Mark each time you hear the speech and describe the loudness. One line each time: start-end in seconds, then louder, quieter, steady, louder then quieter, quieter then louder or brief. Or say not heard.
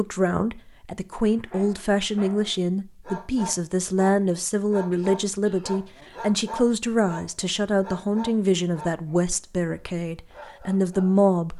0.0-11.5 steady.